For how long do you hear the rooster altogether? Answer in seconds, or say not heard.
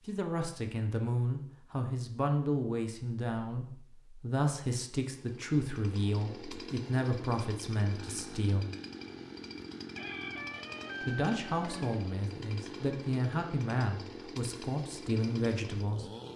2 s.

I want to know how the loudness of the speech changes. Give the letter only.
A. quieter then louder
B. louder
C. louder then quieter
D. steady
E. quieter
D.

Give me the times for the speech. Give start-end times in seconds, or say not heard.
0.1-8.7, 11.0-16.1.